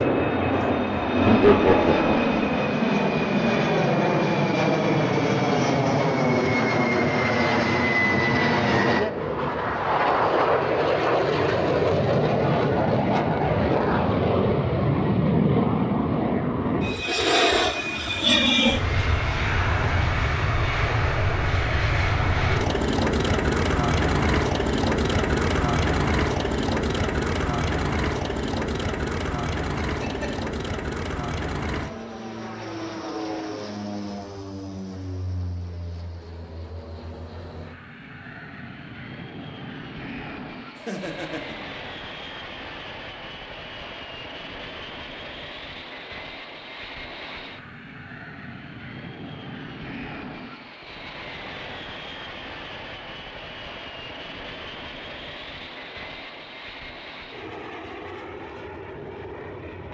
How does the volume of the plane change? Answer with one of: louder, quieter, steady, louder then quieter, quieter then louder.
quieter.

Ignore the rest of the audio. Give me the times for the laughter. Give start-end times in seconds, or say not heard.
1.2-2.1, 29.9-30.4, 40.8-41.7.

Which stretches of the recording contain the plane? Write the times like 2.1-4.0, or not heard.
0.0-59.8.